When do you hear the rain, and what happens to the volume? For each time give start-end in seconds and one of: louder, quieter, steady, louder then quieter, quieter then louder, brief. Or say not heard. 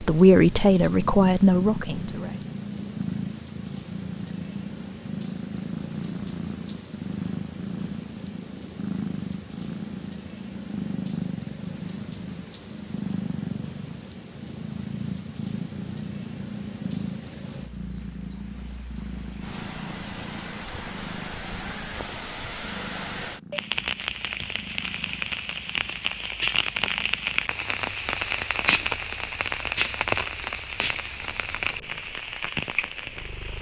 0.0-33.5 louder.